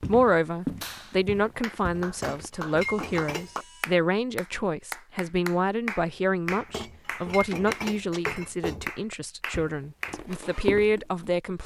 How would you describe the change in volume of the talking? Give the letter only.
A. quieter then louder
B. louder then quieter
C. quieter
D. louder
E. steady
E.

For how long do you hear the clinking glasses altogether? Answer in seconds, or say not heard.
4 s.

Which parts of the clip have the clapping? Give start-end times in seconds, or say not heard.
0.8-10.4.